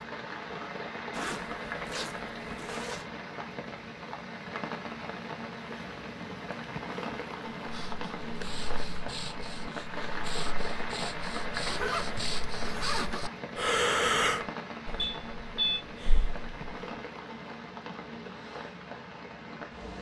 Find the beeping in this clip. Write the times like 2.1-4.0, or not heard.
14.9-15.8.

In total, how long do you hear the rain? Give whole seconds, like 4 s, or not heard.
20 s.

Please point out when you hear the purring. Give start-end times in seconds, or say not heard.
not heard.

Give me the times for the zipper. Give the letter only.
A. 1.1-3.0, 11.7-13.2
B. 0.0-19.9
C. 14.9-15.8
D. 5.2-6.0
A.